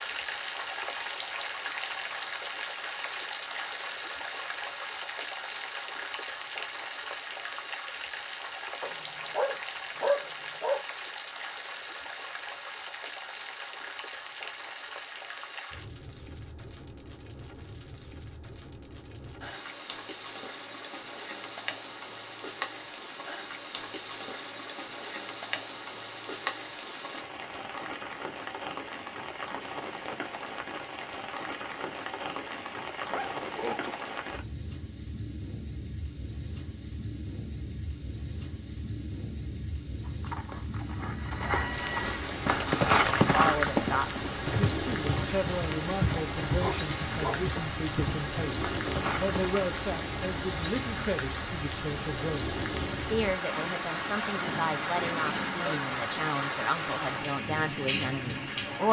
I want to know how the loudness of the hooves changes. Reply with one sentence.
The loudness of the hooves goes up, then down.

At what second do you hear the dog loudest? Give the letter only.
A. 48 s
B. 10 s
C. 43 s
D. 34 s
B.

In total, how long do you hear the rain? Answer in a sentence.
You can hear the rain for 59 seconds altogether.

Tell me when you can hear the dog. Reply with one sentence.
You can hear the dog from 8.8 to 10.8 s, from 33.1 to 34.0 s and from 46.6 to 47.5 s.